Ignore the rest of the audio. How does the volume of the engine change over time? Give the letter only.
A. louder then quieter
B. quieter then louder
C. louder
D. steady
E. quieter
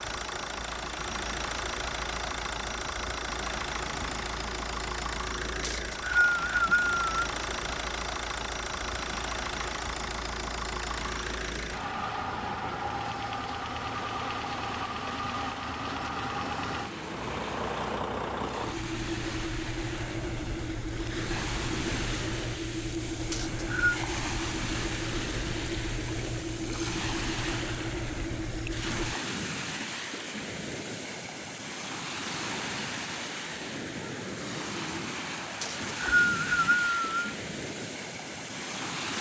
D.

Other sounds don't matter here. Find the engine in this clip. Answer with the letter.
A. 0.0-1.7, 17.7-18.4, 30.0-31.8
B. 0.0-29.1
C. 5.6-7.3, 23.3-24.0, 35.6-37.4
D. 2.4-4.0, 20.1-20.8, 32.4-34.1
B.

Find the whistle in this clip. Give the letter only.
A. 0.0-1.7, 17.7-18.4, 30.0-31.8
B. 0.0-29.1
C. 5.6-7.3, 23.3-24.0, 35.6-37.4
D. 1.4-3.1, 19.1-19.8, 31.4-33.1
C.